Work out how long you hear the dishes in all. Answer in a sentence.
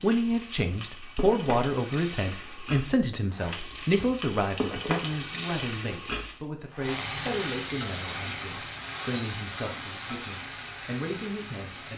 You can't hear the dishes here.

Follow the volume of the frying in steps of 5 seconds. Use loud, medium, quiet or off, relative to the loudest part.
loud, loud, medium.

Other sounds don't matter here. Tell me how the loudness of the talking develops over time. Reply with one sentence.
The loudness of the talking goes down.